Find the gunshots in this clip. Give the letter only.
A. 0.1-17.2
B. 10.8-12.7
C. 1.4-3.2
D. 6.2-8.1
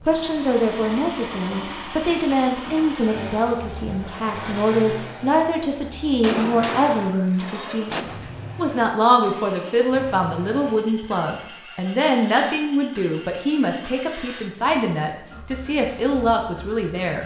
D.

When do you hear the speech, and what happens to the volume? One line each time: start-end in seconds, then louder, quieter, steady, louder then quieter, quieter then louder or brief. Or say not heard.
0.1-17.2 steady.